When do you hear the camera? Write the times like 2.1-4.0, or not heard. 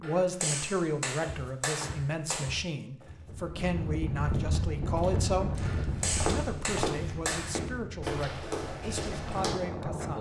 not heard.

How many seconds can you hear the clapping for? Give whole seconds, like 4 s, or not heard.
5 s.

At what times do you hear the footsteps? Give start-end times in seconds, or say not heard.
1.2-9.6.